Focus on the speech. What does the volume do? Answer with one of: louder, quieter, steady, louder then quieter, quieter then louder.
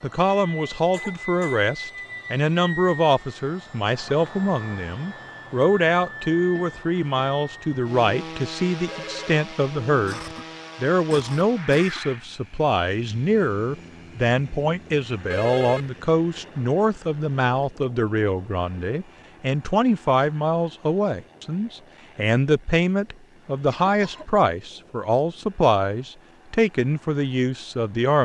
steady.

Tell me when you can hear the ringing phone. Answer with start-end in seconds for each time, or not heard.
8.8-9.3, 15.3-15.9.